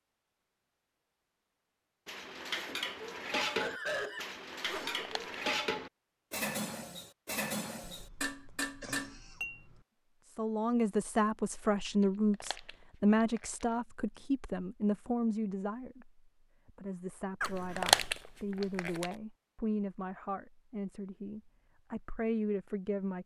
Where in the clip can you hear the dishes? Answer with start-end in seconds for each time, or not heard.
2.0-9.6.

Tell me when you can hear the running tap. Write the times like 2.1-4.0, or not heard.
not heard.